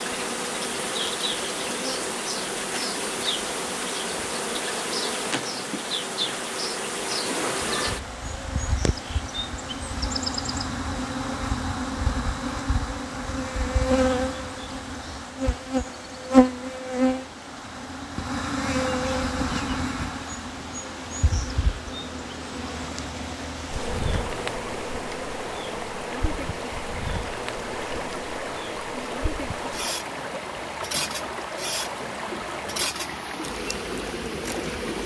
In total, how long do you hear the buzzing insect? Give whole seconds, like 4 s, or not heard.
35 s.